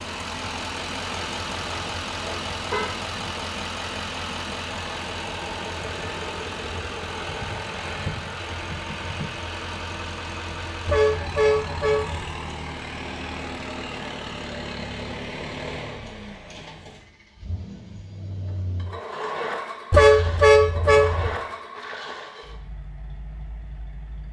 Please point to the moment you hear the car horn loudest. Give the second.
20 s.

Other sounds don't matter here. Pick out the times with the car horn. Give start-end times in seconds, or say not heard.
1.6-3.0, 10.8-12.2, 19.9-21.3.